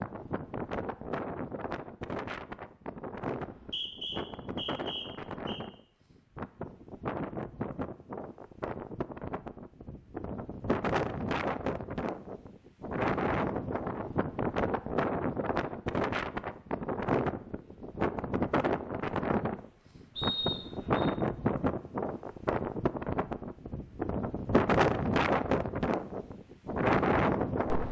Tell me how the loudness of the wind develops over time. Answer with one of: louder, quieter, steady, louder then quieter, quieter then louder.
louder.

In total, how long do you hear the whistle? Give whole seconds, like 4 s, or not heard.
3 s.